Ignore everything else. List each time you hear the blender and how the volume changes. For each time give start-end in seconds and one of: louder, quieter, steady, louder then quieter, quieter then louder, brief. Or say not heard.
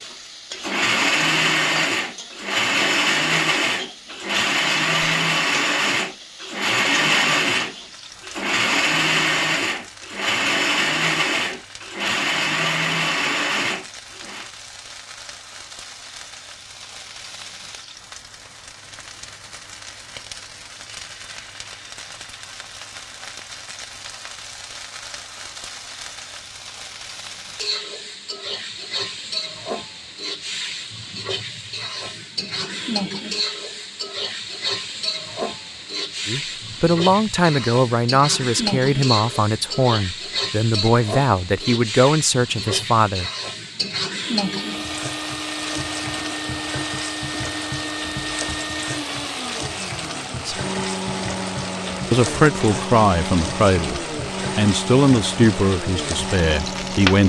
0.0-14.5 steady
44.4-57.2 steady.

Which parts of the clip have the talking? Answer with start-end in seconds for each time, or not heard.
36.2-43.3, 52.1-57.2.